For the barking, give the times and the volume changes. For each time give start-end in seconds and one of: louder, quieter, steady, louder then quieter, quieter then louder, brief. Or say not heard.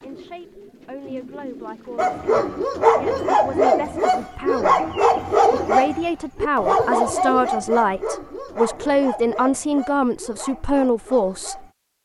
1.9-11.7 quieter.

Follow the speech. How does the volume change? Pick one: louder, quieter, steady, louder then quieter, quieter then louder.
louder.